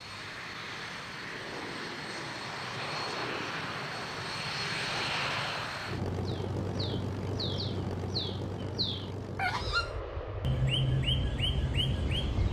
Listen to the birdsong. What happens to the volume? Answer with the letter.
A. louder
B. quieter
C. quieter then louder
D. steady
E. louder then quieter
A.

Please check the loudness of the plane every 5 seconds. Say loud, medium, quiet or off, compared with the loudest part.
loud, loud, medium.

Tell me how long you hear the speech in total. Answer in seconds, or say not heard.
not heard.